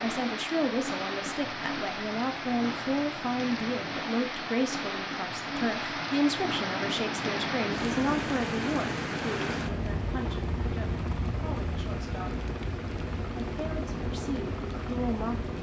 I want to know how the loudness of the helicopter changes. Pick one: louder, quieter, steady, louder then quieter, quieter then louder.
steady.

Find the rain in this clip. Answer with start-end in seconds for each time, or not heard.
0.0-15.5.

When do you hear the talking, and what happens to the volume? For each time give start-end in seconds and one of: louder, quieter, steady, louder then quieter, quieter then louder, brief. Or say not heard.
0.0-12.3 quieter
13.4-15.5 brief.